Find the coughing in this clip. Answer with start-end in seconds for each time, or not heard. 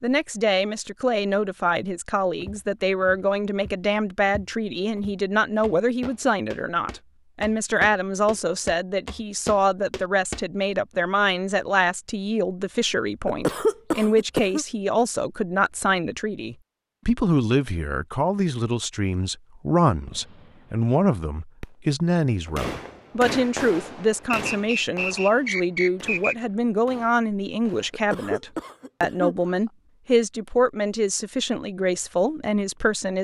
13.2-14.7, 27.9-29.7.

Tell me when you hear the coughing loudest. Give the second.
14 s.